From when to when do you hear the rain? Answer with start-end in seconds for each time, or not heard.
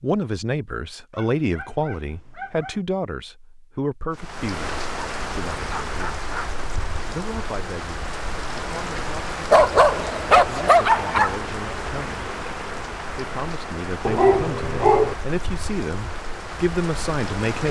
4.1-17.6.